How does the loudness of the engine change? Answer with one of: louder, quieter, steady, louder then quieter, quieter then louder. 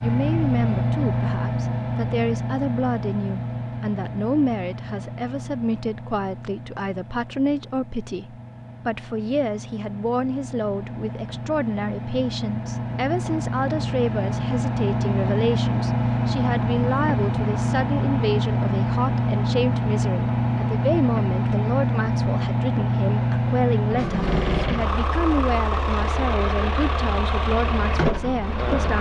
quieter then louder.